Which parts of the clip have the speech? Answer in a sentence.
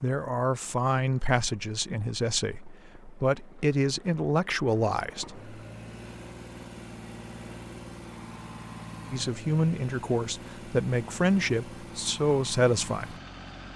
The speech can be heard from 0.0 to 5.5 s and from 9.1 to 13.2 s.